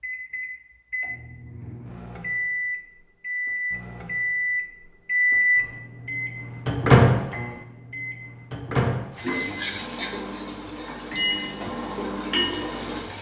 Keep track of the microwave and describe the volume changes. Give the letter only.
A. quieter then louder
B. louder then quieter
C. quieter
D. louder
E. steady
B.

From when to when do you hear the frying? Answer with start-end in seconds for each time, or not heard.
9.1-13.1.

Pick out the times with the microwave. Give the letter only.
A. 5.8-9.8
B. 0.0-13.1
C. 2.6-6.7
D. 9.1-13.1
B.